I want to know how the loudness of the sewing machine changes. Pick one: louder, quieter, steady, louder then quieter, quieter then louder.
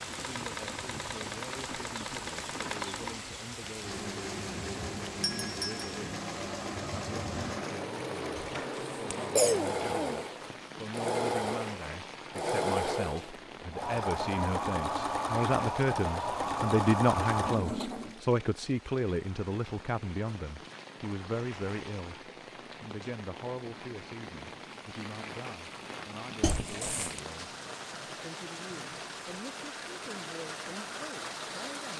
louder.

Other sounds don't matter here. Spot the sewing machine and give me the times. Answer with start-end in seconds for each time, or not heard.
0.0-18.2.